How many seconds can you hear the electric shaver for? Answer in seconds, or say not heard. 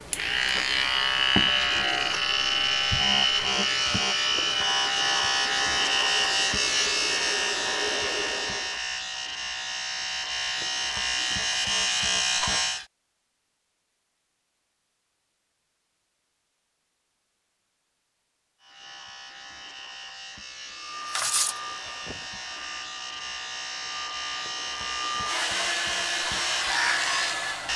22 s.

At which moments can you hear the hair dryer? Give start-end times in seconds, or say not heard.
0.0-8.8, 20.7-27.7.